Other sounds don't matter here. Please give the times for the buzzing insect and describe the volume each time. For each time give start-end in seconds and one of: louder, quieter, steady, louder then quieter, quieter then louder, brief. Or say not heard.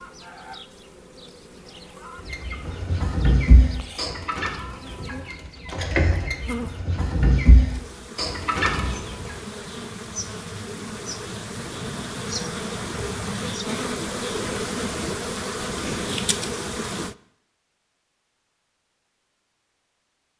0.0-17.1 louder.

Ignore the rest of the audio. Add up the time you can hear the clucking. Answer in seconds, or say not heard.
7 s.